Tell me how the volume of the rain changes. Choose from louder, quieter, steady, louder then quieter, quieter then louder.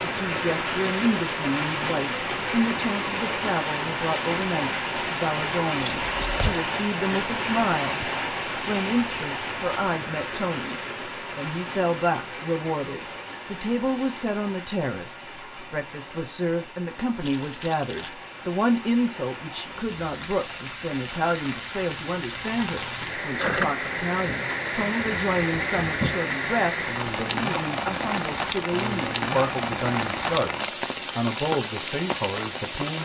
quieter then louder.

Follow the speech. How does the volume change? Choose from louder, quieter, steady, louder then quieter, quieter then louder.
steady.